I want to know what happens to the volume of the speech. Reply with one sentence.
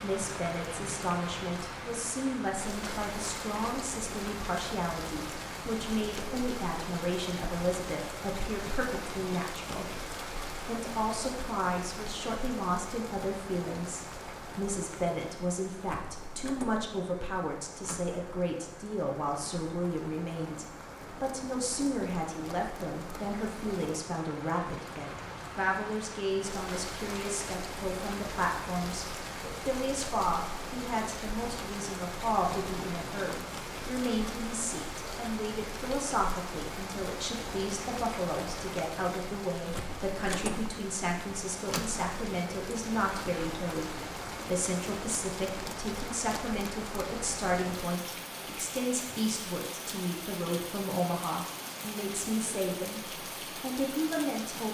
The loudness of the speech stays about the same.